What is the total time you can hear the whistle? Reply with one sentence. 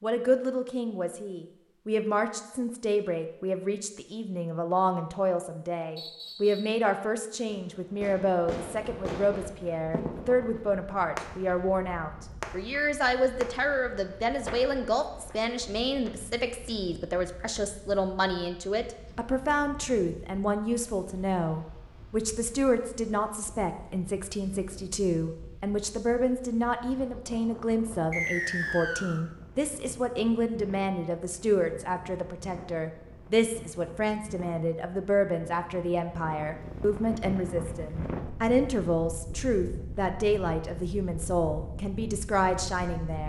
You can hear the whistle for 2 seconds altogether.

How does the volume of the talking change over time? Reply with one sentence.
The volume of the talking stays about the same.